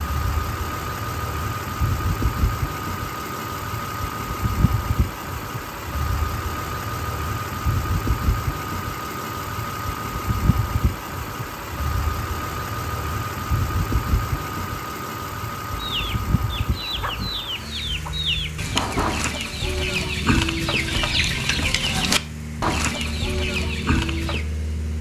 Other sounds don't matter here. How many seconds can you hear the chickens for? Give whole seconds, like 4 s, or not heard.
9 s.